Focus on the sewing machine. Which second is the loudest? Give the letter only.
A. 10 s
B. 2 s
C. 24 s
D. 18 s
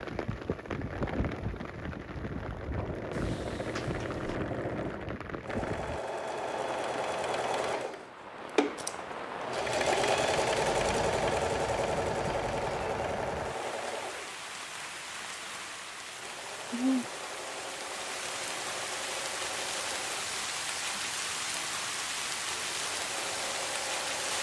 A.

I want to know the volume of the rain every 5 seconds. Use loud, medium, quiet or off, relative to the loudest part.
loud, medium, medium, loud, loud.